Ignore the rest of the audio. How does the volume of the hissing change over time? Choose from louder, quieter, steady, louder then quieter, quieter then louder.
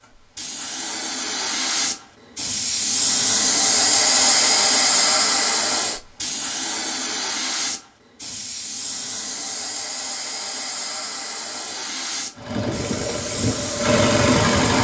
louder then quieter.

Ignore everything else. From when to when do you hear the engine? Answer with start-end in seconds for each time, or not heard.
12.3-14.7.